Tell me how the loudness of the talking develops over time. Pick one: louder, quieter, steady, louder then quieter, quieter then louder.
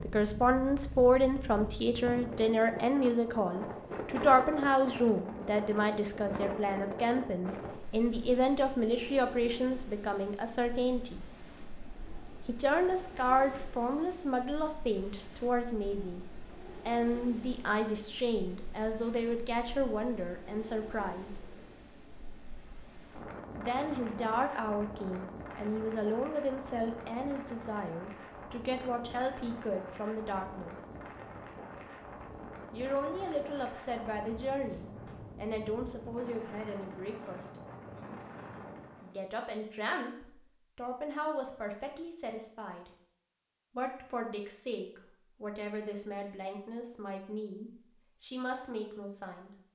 quieter.